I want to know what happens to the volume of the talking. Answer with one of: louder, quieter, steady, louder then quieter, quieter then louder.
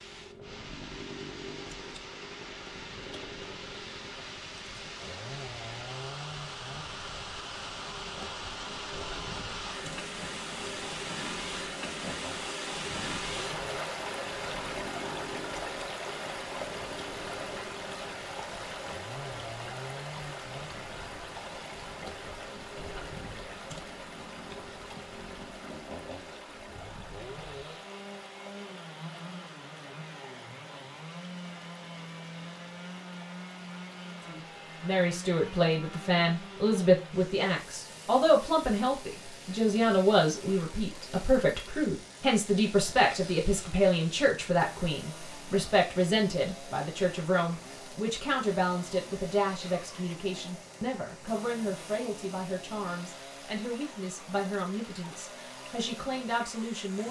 quieter.